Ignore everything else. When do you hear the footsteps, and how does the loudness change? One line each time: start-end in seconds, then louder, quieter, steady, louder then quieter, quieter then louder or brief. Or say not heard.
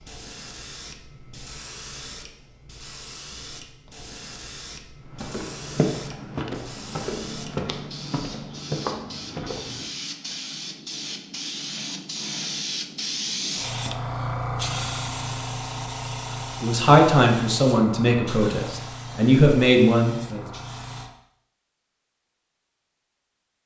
5.0-10.3 quieter.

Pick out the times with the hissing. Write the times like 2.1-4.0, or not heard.
0.0-21.1.